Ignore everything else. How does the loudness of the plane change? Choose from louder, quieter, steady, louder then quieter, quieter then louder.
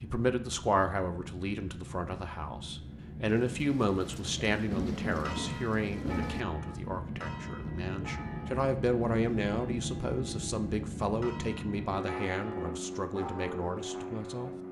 louder.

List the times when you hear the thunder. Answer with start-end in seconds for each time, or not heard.
3.2-6.5.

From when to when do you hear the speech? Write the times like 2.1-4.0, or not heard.
0.0-14.6.